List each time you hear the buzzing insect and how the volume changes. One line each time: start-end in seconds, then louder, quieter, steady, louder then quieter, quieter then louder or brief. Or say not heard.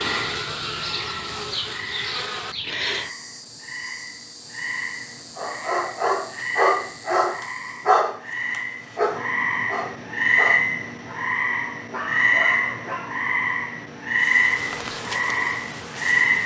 0.0-8.0 quieter
14.2-16.4 brief.